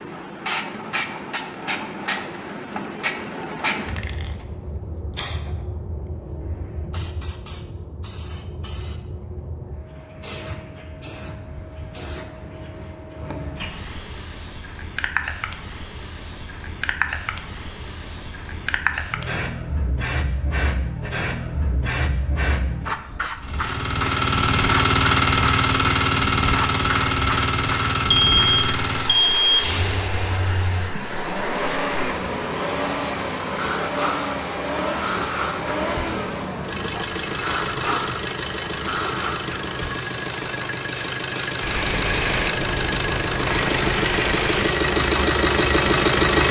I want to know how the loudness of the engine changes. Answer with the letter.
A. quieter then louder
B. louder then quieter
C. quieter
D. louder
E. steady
A.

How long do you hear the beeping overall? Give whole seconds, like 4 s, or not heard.
2 s.